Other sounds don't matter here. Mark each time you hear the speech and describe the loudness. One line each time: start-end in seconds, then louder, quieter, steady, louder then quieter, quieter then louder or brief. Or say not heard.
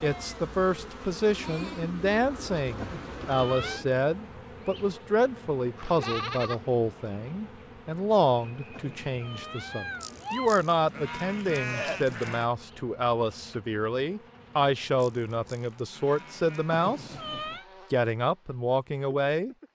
0.0-17.1 steady
17.9-19.6 brief.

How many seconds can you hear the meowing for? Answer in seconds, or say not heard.
4 s.